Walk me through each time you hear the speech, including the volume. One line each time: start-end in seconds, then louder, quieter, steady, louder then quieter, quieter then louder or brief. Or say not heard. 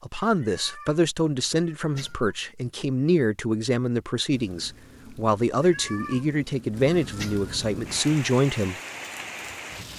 0.0-8.8 steady.